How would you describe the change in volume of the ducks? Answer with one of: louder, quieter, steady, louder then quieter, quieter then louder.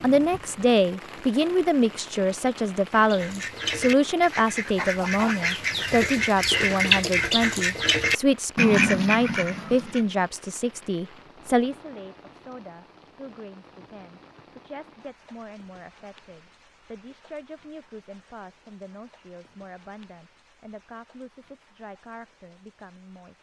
louder.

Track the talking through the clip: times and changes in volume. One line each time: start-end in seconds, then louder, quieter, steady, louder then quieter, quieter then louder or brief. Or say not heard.
0.0-23.3 quieter.